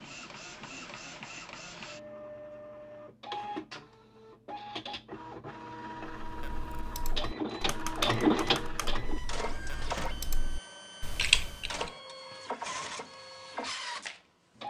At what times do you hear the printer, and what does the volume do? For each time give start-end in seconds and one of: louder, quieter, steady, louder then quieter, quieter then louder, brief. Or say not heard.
0.0-14.6 louder then quieter.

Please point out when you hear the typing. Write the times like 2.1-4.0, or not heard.
6.2-11.9.